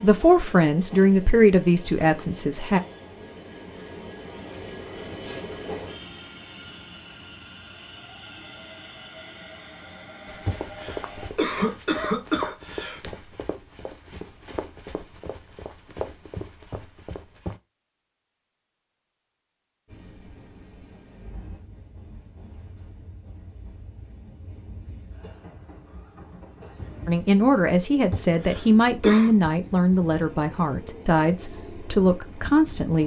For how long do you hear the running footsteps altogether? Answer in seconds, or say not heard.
7 s.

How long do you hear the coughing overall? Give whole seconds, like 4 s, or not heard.
4 s.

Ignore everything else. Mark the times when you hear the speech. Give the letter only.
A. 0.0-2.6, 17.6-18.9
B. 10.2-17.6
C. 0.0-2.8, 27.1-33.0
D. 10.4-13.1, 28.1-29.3
C.